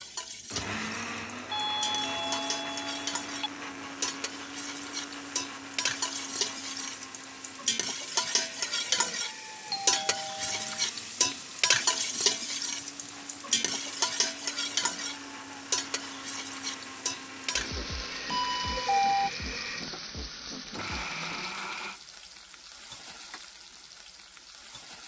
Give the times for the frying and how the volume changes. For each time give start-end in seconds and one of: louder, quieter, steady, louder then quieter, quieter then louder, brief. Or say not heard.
0.0-25.0 louder then quieter.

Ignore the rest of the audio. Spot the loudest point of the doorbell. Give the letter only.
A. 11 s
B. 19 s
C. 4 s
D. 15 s
B.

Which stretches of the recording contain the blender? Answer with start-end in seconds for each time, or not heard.
0.4-22.0.